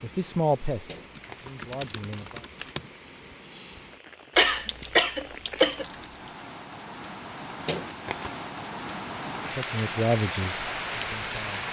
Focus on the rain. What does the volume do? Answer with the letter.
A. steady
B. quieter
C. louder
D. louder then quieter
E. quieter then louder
C.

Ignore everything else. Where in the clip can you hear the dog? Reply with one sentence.
The dog can't be heard in this clip.